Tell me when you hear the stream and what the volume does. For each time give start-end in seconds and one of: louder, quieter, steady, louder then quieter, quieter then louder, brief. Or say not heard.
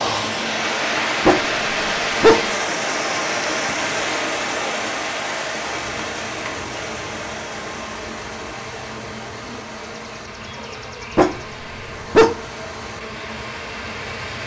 0.0-14.4 quieter.